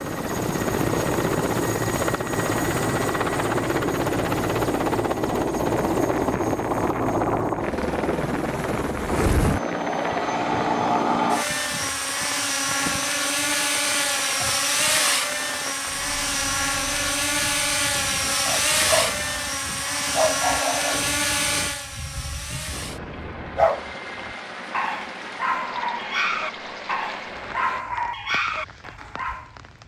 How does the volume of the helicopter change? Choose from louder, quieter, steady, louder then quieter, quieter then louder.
quieter.